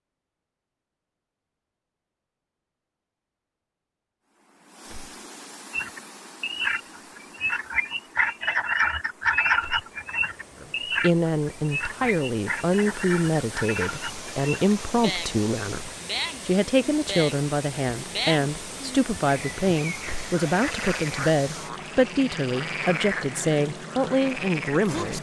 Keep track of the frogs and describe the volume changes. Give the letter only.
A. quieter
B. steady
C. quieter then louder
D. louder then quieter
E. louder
A.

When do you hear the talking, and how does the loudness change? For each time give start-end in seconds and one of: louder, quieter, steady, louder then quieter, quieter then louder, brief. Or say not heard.
10.6-25.1 steady.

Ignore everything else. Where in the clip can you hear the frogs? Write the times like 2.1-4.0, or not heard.
5.7-25.1.